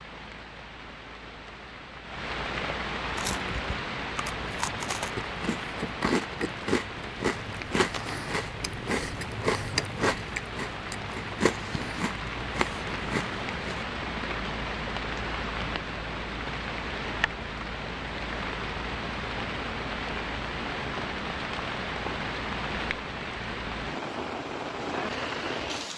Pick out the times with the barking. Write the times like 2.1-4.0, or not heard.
not heard.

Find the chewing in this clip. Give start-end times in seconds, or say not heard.
3.1-13.8.